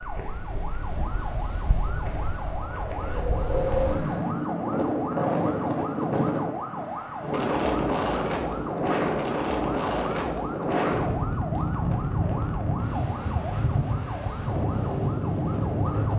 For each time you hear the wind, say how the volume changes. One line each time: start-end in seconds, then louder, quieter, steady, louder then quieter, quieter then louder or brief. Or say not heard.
0.0-16.1 louder.